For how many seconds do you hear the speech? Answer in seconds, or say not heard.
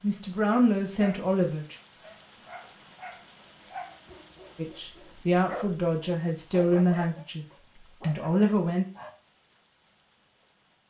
6 s.